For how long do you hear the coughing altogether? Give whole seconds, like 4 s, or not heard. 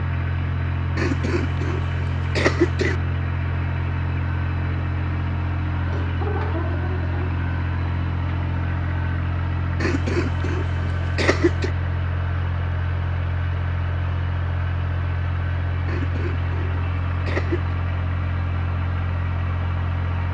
6 s.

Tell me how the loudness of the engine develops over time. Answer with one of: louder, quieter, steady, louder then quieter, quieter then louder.
steady.